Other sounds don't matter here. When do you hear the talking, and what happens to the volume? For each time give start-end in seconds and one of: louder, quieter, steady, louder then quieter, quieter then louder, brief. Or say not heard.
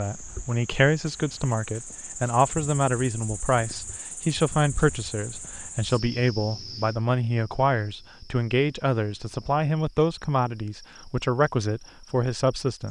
0.0-12.8 steady.